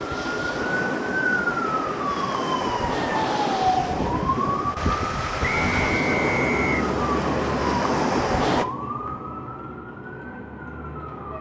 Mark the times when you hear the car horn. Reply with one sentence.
The car horn can't be heard in this clip.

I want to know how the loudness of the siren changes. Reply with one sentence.
The loudness of the siren goes down.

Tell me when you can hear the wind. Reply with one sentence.
The wind can be heard from 0.0 to 8.7 s.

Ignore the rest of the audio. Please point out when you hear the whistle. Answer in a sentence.
You can hear the whistle from 5.5 to 6.8 s.